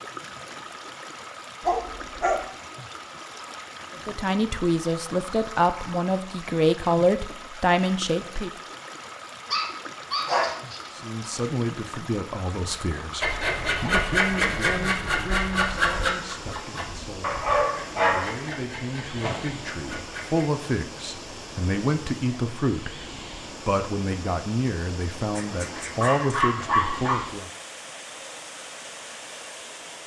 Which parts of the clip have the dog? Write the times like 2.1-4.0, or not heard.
1.6-2.5, 9.5-10.9, 17.2-19.4, 25.4-27.2.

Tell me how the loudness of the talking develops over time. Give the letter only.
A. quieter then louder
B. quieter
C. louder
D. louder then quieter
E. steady
A.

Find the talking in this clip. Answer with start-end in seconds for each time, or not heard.
4.0-8.5, 10.9-23.0, 23.6-27.5.